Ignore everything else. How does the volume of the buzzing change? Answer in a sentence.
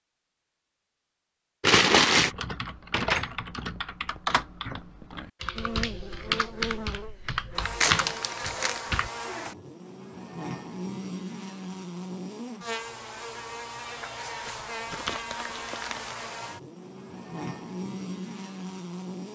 The volume of the buzzing stays about the same.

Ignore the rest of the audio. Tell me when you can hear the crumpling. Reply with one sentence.
The crumpling can be heard from 1.6 to 2.3 s, from 7.8 to 8.8 s and from 14.4 to 16.1 s.